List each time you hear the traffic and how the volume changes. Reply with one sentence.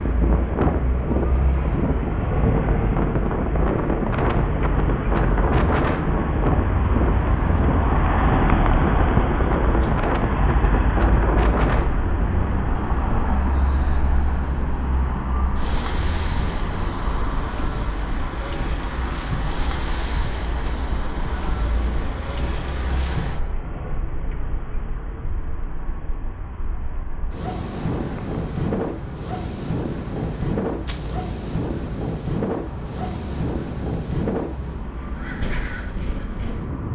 You can hear the traffic from 0.0 to 36.9 s, getting quieter.